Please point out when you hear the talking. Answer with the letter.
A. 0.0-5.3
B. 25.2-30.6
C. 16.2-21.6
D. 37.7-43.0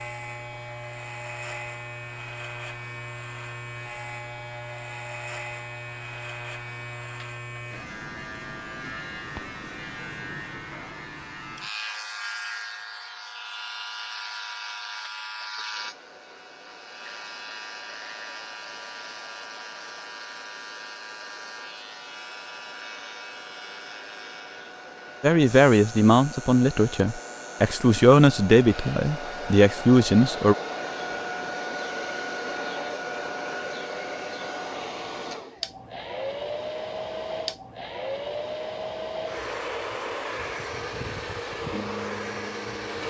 B.